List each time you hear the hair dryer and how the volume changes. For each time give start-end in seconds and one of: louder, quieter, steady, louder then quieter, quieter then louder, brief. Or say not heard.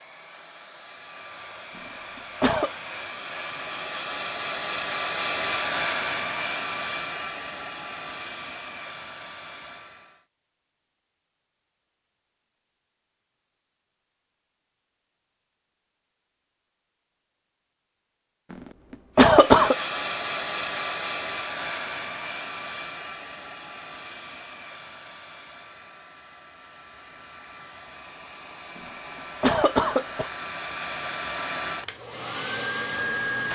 0.0-10.2 louder then quieter
19.2-33.5 quieter then louder.